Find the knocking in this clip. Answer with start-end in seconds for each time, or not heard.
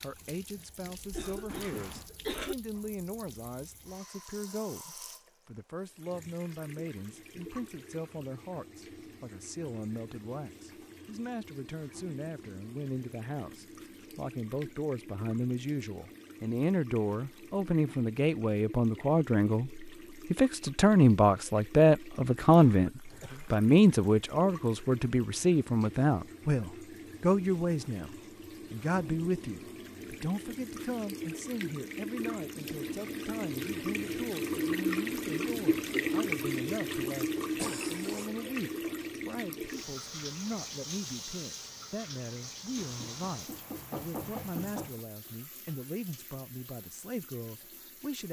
1.4-2.1, 42.8-45.0.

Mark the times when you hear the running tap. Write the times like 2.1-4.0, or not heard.
0.0-48.2.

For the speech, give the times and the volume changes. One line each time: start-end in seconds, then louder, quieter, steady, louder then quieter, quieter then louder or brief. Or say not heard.
0.0-48.2 louder then quieter.